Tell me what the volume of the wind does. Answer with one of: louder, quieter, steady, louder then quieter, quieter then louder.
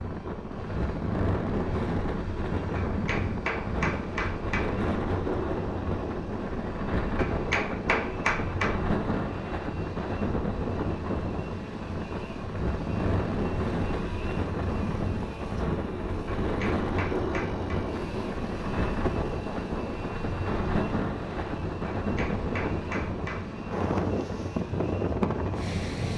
steady.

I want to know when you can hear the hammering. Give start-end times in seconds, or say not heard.
2.8-4.7, 7.2-8.8, 16.4-17.8, 22.0-23.4.